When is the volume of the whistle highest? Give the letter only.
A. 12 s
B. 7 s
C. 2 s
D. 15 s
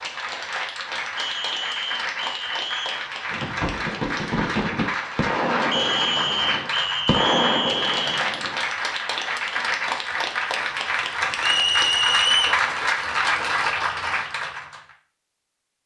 A.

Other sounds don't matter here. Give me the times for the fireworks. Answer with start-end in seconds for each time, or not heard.
3.3-8.6.